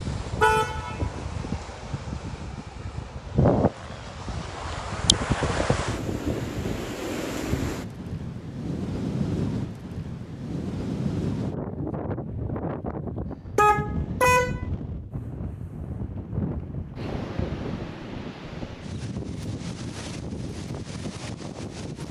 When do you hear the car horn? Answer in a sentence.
The car horn can be heard from 0.4 to 1.1 s and from 13.6 to 14.6 s.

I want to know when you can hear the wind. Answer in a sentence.
You can hear the wind from 0.0 to 22.0 s.